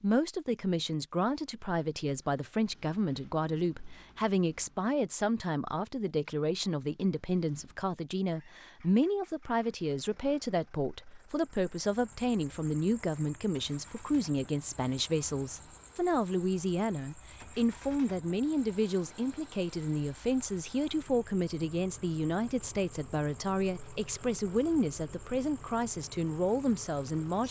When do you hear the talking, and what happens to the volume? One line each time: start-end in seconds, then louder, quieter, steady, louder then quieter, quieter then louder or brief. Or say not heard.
0.0-27.4 steady.